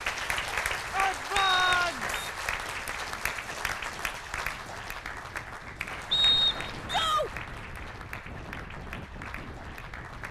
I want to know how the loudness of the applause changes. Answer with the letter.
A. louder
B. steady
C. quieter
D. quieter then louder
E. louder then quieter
C.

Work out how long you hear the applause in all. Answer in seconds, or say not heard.
10 s.